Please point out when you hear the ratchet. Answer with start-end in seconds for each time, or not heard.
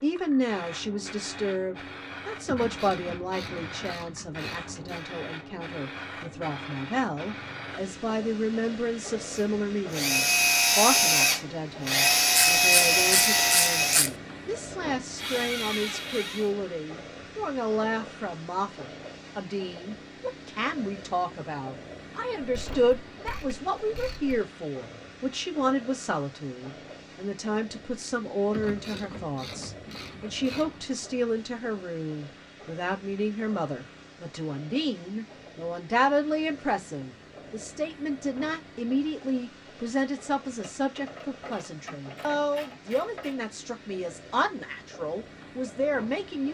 2.5-5.0, 12.3-14.1, 22.5-24.4, 28.5-30.8, 40.5-43.4.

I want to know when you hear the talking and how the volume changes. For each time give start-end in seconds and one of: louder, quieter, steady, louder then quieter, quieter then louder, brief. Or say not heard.
0.0-46.4 steady.